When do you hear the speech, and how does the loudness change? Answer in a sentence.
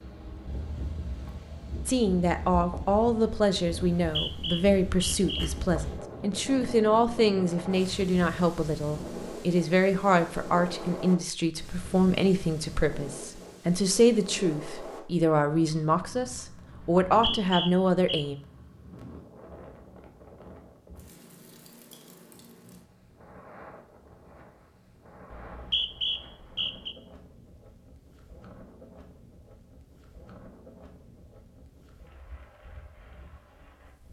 You can hear the speech from 1.9 to 18.4 s, at a steady volume.